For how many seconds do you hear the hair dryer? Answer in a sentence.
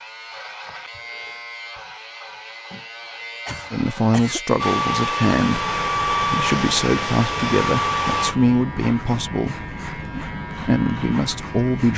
You can hear the hair dryer for 4 seconds altogether.